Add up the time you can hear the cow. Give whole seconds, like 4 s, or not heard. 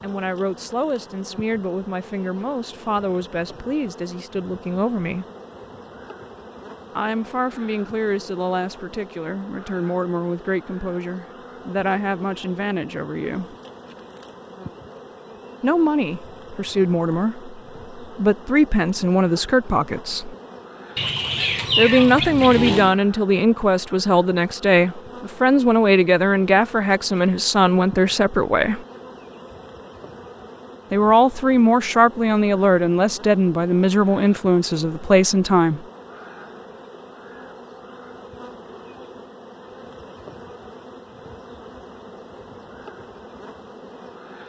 2 s.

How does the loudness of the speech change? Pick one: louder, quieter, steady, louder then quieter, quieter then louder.
louder.